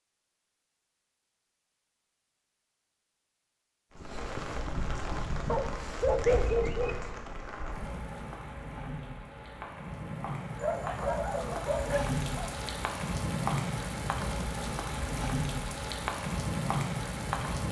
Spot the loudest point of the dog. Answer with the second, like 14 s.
6 s.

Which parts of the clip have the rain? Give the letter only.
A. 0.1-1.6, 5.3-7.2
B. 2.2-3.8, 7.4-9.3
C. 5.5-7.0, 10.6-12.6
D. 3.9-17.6
D.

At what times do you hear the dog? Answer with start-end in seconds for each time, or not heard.
5.5-7.0, 10.6-12.6.